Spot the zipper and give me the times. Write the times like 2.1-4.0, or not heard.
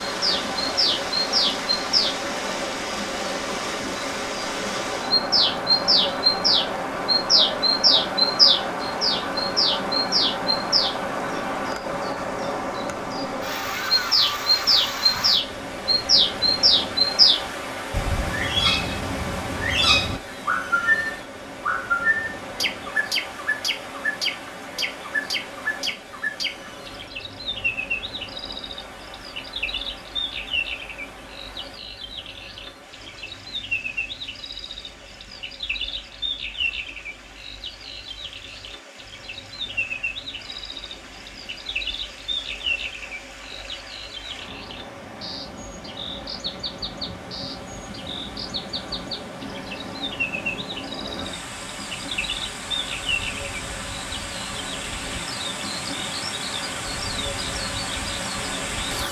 not heard.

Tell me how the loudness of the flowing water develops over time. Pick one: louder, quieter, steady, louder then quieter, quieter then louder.
quieter then louder.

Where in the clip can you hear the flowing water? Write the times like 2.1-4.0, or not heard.
0.0-59.0.